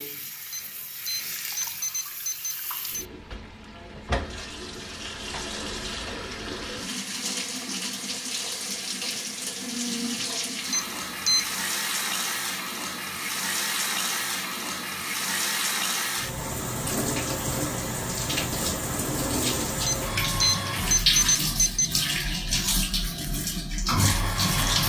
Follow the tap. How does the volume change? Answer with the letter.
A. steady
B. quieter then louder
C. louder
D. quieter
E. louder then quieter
C.